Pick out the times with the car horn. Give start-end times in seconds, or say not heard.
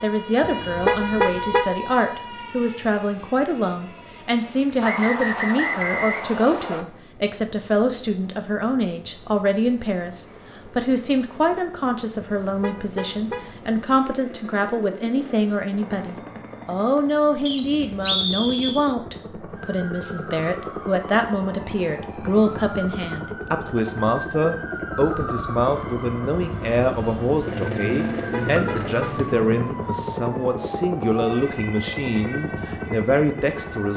0.4-1.8, 12.4-13.5, 28.1-29.1.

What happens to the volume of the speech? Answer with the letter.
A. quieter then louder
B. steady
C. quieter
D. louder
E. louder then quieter
B.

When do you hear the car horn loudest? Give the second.
1 s.